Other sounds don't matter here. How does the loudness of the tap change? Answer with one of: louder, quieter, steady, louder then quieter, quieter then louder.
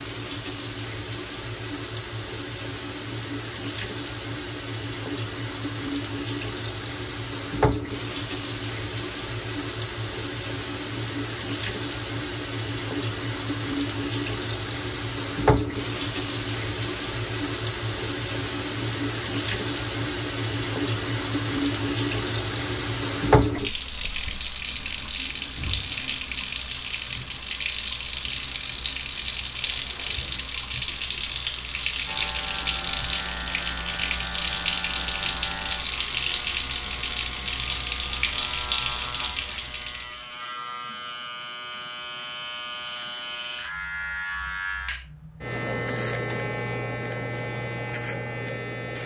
louder.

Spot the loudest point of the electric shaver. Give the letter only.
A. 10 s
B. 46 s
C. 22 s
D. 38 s
B.